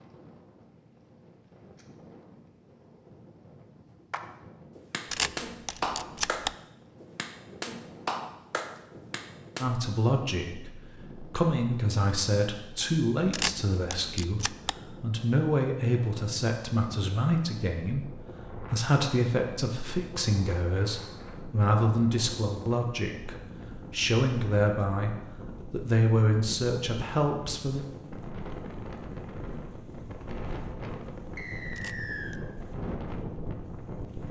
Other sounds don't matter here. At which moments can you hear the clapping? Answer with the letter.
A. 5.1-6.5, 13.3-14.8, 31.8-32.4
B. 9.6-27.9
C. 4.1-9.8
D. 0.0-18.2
C.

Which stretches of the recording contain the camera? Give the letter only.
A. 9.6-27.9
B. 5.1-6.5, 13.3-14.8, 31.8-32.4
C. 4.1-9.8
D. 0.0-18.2
B.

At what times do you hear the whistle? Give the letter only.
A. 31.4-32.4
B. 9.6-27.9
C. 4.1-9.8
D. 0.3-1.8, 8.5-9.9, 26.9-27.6
A.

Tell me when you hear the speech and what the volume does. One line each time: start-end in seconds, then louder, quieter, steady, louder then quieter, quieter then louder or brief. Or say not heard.
9.6-27.9 steady.